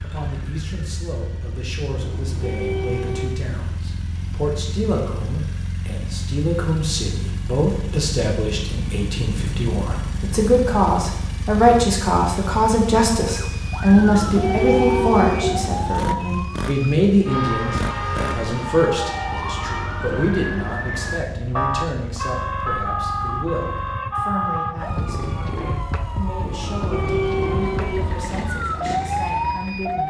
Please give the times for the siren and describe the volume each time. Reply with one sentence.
You can hear the siren from 13.2 to 30.0 s, at a steady volume.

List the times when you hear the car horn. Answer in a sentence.
You can hear the car horn from 1.9 to 3.4 s, from 13.9 to 15.9 s and from 26.4 to 28.2 s.